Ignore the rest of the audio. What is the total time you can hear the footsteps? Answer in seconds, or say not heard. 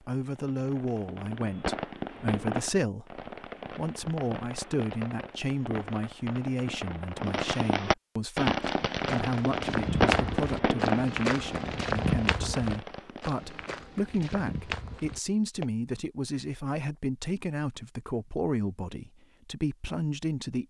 7 s.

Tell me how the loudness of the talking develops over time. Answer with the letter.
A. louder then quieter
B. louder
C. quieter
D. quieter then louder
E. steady
E.